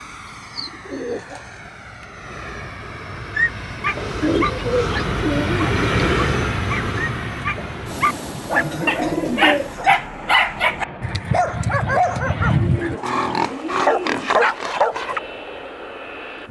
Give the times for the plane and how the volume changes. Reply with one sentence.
The plane can be heard from 0.0 to 16.4 s, getting louder then quieter.